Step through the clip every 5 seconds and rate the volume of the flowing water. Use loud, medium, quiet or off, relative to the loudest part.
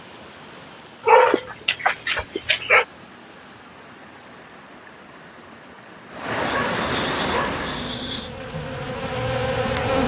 quiet, loud.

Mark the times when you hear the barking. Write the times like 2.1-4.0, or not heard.
1.1-2.9, 6.3-8.3.